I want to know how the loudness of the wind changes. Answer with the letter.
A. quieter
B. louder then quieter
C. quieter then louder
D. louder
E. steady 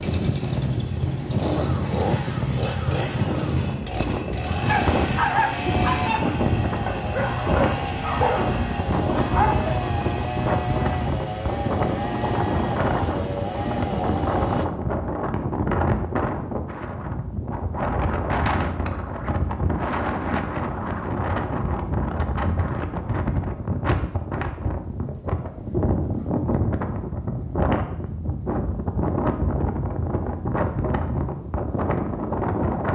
E.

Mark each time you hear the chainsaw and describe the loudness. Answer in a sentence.
The chainsaw can be heard from 0.0 to 14.7 s, at a steady volume.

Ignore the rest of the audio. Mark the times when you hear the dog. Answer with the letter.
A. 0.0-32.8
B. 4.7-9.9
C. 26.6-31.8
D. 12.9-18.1
B.